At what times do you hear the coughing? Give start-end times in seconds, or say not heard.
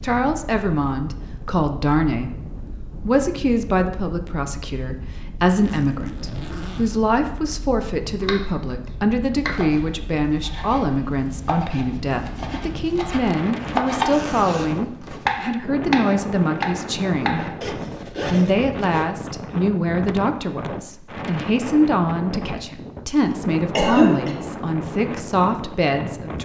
23.3-24.4.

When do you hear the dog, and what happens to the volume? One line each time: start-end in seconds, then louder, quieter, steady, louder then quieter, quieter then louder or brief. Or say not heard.
not heard.